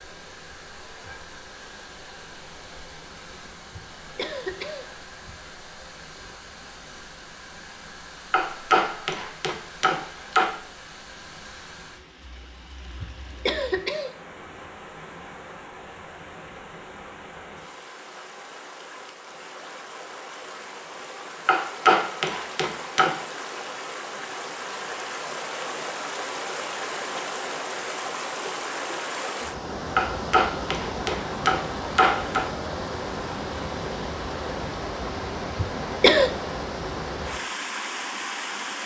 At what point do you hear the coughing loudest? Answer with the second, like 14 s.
36 s.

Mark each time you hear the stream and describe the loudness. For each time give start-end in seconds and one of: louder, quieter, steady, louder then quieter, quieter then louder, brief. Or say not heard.
0.0-38.8 louder.